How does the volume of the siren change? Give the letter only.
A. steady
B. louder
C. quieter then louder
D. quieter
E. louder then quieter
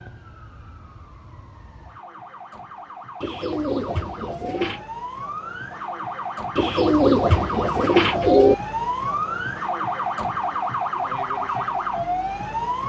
B.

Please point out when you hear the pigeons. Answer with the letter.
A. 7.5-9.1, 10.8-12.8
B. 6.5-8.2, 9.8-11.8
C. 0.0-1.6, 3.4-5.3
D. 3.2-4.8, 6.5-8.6
D.